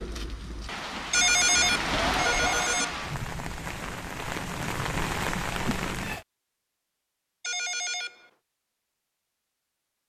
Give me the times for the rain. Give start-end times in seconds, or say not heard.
0.0-6.2.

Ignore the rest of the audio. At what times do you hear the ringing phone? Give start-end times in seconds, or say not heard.
1.1-3.0, 7.4-8.2.